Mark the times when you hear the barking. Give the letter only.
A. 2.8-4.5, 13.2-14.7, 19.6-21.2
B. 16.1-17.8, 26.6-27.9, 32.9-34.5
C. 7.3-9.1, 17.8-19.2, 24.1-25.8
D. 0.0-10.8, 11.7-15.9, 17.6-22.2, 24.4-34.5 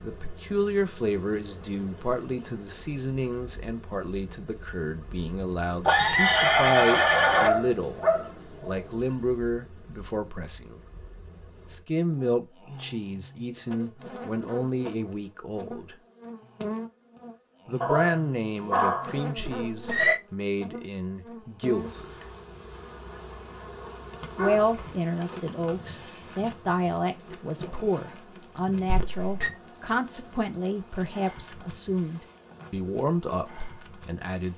C.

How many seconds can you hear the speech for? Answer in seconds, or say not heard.
30 s.